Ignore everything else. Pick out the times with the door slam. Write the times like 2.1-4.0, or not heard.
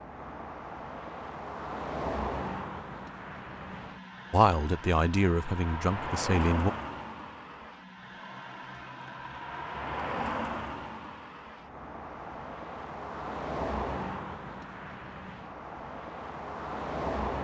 not heard.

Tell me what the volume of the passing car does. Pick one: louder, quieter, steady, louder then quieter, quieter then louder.
steady.